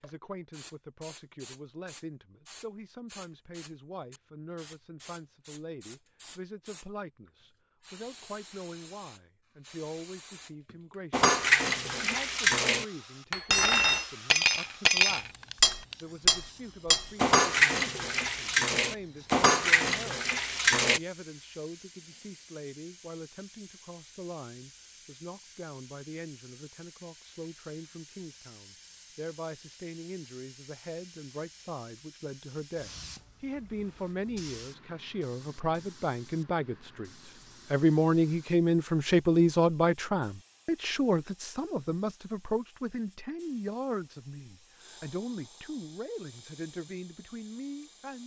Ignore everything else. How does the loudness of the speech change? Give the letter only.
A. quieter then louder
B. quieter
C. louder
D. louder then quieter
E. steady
C.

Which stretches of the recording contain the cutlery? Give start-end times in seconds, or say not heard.
11.1-21.0.